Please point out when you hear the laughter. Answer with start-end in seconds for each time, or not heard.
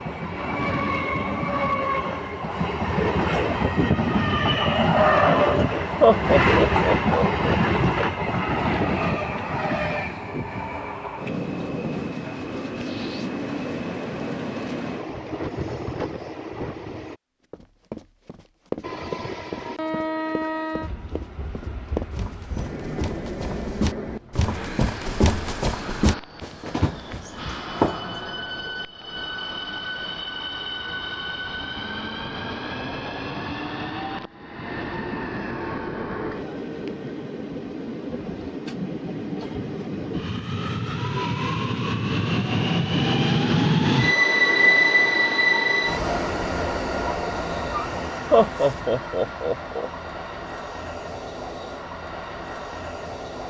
6.0-7.6, 48.3-49.9.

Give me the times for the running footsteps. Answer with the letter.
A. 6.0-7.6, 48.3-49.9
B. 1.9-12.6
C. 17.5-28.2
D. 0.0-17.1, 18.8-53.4
C.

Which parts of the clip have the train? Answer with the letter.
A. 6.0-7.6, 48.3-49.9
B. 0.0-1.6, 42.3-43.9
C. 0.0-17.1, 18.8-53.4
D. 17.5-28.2
C.